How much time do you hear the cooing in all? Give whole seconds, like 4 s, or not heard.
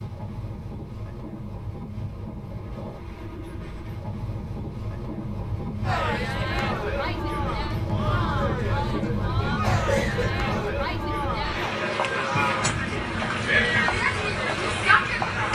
not heard.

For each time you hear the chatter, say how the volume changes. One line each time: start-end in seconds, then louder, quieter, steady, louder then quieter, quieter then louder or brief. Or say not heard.
5.8-15.5 louder.